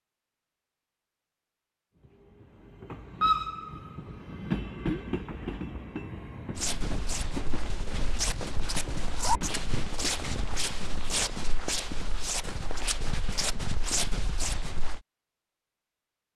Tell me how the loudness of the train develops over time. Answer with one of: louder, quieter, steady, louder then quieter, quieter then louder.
quieter.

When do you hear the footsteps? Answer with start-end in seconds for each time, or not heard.
6.5-15.0.